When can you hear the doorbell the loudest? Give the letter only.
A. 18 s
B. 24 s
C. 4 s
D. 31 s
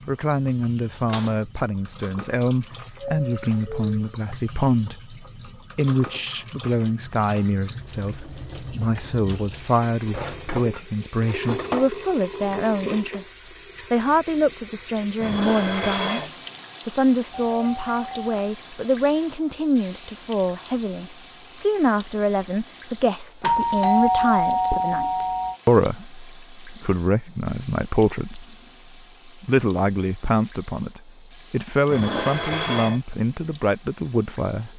B.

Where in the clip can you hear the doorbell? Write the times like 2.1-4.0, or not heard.
3.1-4.1, 17.3-18.4, 23.4-25.6.